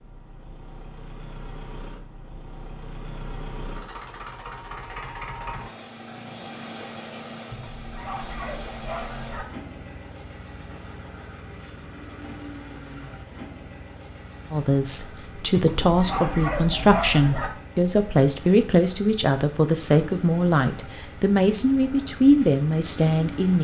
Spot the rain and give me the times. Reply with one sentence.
The rain can't be heard in this clip.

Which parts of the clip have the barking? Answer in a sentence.
The barking can be heard from 7.5 to 9.4 s and from 15.6 to 17.5 s.